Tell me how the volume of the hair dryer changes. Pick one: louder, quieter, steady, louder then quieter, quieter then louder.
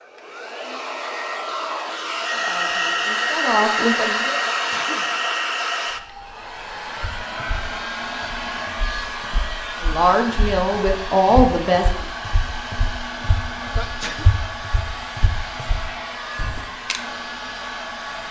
quieter.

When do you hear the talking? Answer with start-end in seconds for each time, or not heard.
2.3-4.3, 9.8-12.1.